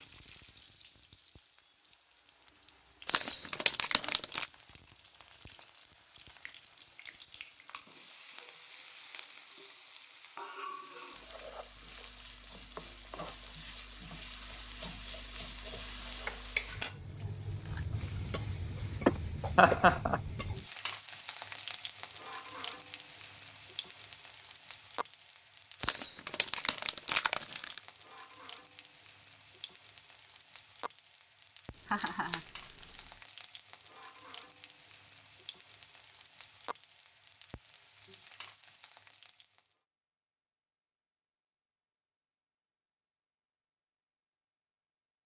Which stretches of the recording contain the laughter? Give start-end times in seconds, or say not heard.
19.1-20.2, 31.9-32.5.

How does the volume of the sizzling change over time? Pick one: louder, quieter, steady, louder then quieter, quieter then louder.
louder then quieter.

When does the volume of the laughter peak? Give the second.
20 s.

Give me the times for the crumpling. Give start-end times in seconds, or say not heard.
3.0-4.5, 25.8-27.8, 31.8-33.1.